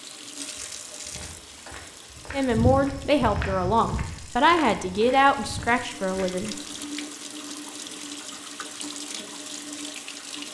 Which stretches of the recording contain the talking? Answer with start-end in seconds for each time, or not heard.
2.3-6.5.